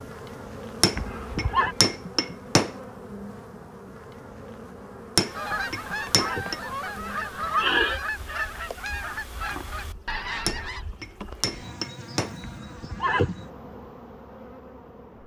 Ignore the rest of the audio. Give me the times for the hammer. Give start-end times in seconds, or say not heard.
0.8-2.8, 5.2-6.5, 10.4-12.3.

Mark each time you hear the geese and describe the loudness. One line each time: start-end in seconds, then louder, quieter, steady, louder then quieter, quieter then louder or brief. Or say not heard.
5.2-10.9 steady.